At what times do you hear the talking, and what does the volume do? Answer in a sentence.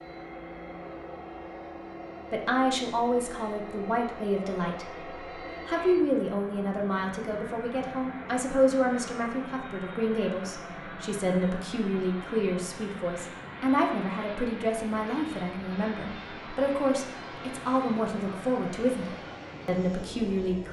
You can hear the talking briefly from 2.3 to 5.0 s; and from 5.7 to 20.6 s, at a steady volume.